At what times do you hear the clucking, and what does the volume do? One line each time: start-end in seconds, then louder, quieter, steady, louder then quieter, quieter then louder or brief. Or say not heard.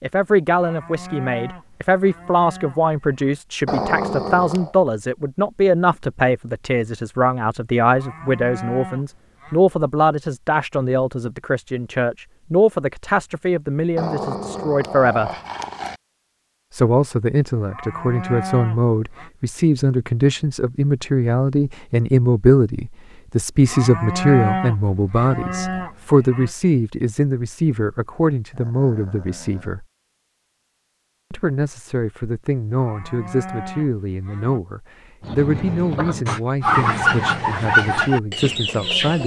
35.2-39.2 louder then quieter.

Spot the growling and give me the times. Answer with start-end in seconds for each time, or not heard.
3.6-4.8, 13.9-16.0, 28.5-29.8.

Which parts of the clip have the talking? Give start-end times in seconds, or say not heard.
0.0-15.3, 16.7-29.9, 31.3-39.2.